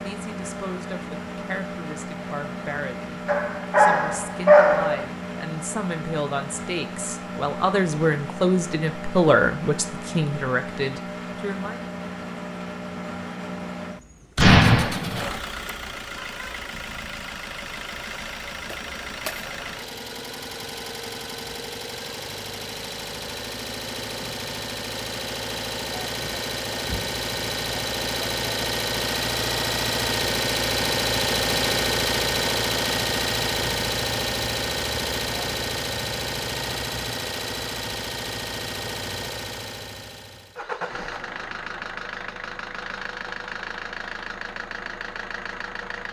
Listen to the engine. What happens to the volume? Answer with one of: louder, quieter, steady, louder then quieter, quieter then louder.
louder then quieter.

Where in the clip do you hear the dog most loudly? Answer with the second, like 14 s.
5 s.